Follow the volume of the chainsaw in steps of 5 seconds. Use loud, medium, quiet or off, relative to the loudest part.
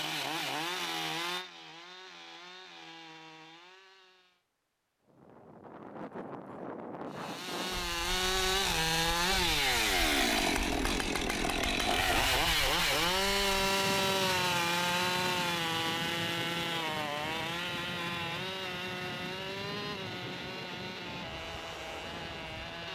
medium, loud, loud, medium, quiet.